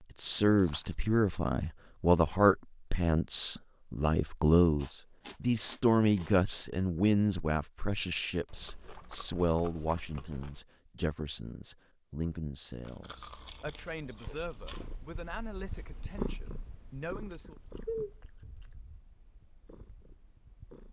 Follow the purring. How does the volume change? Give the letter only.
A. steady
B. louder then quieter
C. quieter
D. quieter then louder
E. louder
B.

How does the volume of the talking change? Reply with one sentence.
The volume of the talking goes down.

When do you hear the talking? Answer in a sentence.
You can hear the talking from 0.1 to 17.6 s.